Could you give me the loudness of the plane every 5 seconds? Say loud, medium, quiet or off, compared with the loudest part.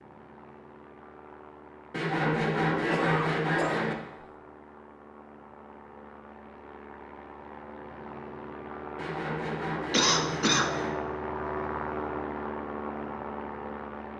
quiet, medium, loud.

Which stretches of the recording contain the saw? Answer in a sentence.
You can hear the saw from 1.9 to 4.0 s and from 8.9 to 10.9 s.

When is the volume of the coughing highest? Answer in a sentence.
The volume of the coughing peaks at 10 seconds.